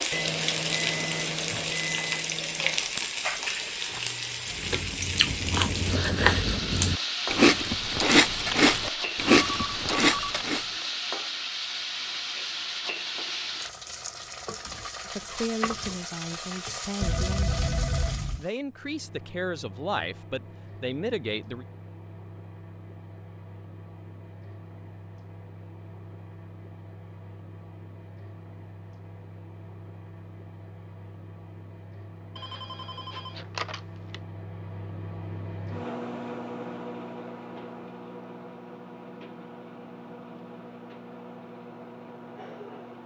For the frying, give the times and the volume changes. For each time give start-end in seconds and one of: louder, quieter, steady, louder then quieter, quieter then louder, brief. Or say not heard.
0.0-18.6 quieter.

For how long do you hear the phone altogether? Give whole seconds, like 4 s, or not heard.
5 s.